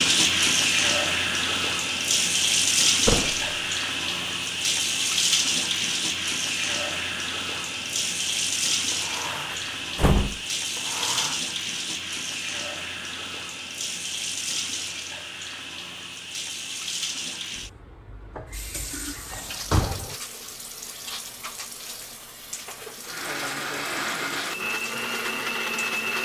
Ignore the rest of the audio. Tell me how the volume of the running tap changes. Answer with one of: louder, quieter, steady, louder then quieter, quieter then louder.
quieter.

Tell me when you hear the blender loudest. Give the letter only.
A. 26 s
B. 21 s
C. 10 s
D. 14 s
A.